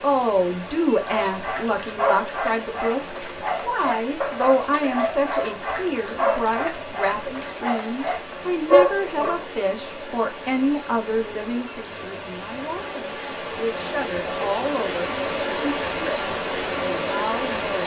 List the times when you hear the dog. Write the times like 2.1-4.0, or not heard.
1.0-9.4.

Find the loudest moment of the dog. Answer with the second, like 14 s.
9 s.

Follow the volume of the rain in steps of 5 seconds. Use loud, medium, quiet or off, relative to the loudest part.
medium, medium, medium, loud.